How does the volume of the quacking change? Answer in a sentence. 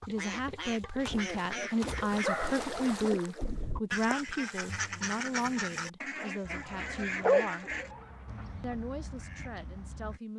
The volume of the quacking goes down.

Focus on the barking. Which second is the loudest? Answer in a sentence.
The loudest moment of the barking is at 7 seconds.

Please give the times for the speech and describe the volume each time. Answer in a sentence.
The speech can be heard from 0.1 to 7.7 s, getting quieter; and briefly from 8.6 to 10.3 s.